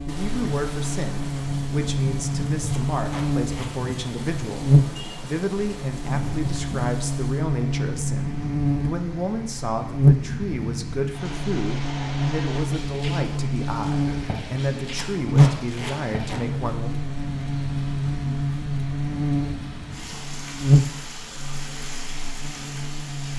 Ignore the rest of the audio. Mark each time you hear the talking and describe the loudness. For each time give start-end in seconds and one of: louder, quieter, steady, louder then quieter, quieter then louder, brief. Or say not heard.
0.1-16.9 steady.